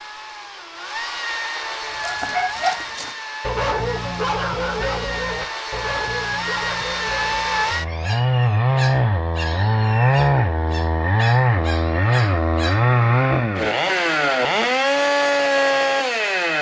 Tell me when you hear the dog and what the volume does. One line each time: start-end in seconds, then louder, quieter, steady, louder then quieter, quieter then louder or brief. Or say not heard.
1.9-12.9 quieter.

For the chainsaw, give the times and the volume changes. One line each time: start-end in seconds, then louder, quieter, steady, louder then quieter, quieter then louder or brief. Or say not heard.
0.0-16.5 louder.